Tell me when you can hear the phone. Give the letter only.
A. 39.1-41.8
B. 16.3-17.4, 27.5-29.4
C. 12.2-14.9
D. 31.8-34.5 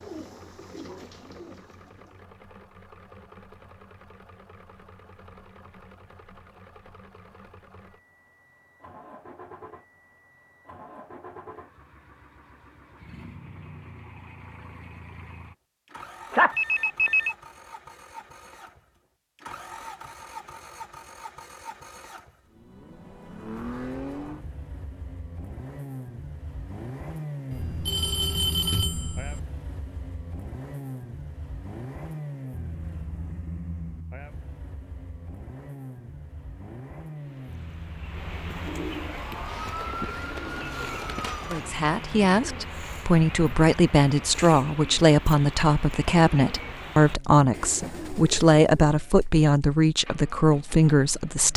B.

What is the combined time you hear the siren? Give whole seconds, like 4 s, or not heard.
3 s.